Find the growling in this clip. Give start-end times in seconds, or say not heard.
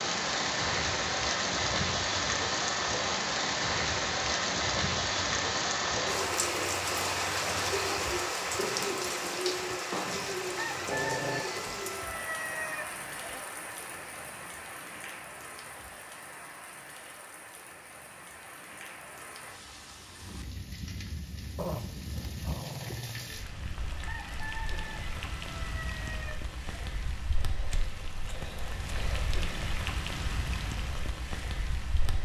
10.8-11.4, 21.6-23.3.